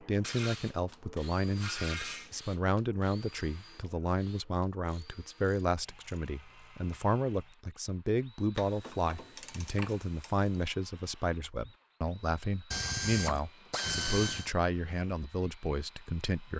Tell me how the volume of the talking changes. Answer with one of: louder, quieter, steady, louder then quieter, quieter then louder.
steady.